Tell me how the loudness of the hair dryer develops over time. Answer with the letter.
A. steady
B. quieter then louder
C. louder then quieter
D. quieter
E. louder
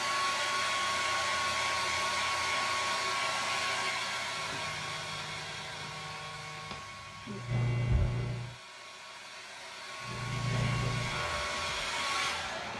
B.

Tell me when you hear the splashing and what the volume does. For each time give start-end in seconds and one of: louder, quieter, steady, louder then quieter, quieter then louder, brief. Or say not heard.
not heard.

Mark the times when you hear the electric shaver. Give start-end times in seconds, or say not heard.
4.3-8.6, 10.0-12.7.